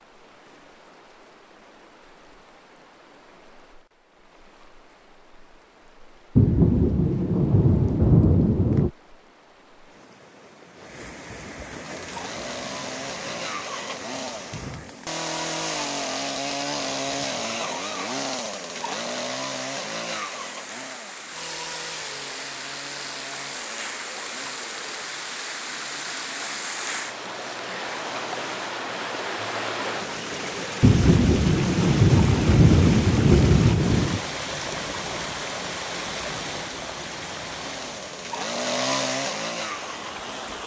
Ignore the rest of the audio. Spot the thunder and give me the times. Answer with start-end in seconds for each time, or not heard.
6.3-8.9, 30.8-34.2.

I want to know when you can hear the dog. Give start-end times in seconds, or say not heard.
not heard.